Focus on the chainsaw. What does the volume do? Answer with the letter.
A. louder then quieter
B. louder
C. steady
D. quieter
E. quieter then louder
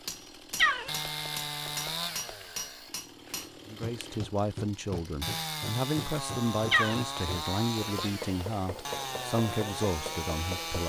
E.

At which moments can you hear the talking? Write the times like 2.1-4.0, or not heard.
3.6-10.8.